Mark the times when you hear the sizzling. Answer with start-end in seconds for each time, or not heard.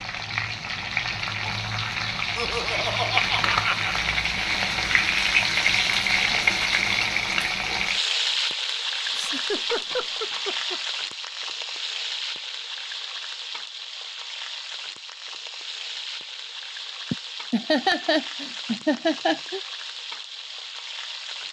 0.0-21.4.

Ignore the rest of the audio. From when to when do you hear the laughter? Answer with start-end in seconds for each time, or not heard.
2.4-4.0, 9.1-10.8, 17.1-19.6.